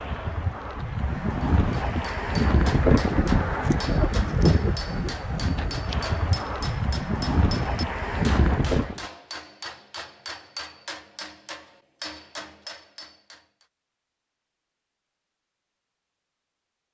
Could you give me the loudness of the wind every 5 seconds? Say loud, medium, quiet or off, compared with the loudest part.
loud, loud, off, off.